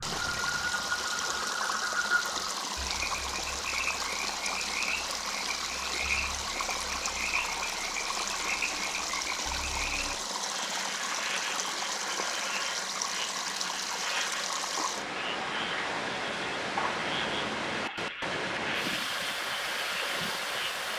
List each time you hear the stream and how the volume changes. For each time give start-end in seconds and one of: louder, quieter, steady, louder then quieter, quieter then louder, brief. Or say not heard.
0.0-20.9 steady.